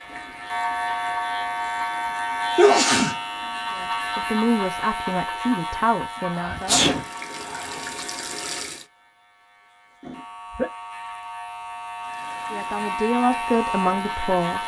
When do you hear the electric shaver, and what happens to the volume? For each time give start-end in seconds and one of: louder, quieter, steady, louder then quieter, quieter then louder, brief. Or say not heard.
0.0-14.6 quieter then louder.